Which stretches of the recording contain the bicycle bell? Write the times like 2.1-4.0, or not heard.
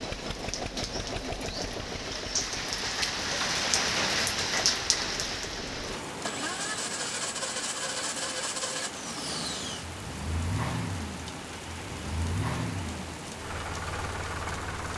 not heard.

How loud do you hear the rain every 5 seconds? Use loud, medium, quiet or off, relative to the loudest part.
loud, medium, medium.